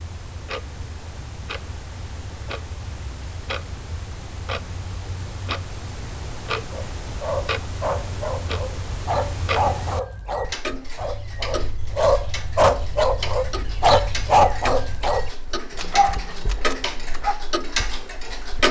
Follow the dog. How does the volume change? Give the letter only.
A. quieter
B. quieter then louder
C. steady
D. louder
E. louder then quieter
E.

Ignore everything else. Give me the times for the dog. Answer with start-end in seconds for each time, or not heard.
6.7-17.4.